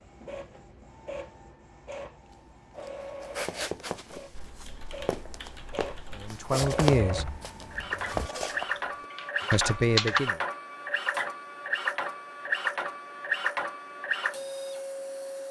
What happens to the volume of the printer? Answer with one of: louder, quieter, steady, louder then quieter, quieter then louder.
louder.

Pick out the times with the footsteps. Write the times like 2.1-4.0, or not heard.
2.3-9.1.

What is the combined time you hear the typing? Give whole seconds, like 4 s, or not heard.
6 s.